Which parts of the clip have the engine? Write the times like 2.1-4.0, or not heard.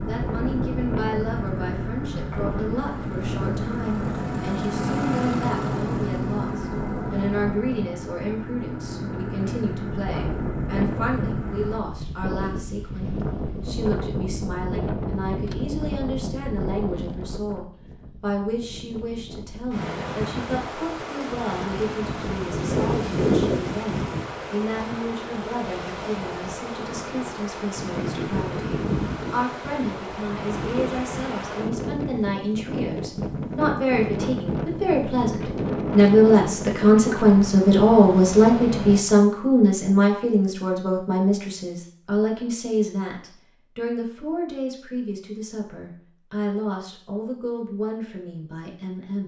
0.0-11.8.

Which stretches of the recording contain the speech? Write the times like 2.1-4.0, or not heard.
0.0-49.2.